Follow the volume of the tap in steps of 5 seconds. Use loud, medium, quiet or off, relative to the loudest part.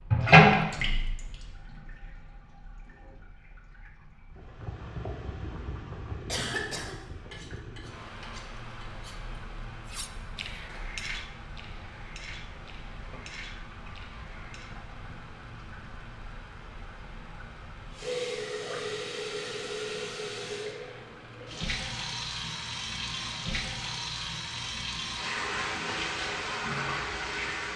loud, quiet, quiet, quiet, medium, medium.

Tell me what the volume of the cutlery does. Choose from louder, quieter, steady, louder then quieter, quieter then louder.
louder then quieter.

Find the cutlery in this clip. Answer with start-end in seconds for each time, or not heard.
7.3-14.7.